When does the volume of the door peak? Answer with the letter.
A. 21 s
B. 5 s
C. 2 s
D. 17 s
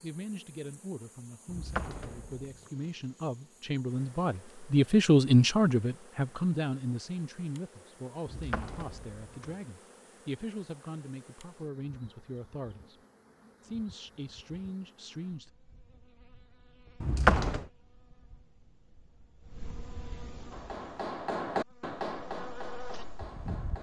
D.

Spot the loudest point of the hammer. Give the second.
21 s.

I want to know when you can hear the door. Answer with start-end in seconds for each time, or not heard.
1.4-2.7, 8.2-9.6, 17.0-17.6.